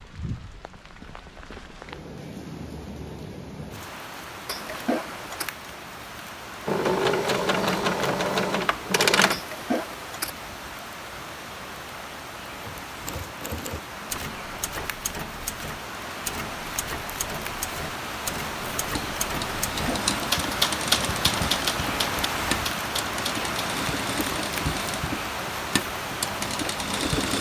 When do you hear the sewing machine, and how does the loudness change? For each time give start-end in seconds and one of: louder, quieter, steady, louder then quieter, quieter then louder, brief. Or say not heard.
6.7-9.4 brief
18.6-27.3 steady.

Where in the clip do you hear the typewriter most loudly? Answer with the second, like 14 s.
21 s.